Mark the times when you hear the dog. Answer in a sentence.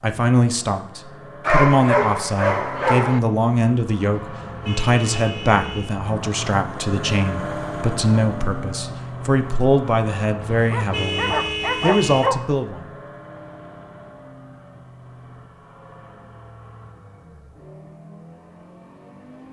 You can hear the dog from 1.4 to 3.2 s and from 10.7 to 12.5 s.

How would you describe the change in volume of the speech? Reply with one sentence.
The loudness of the speech stays about the same.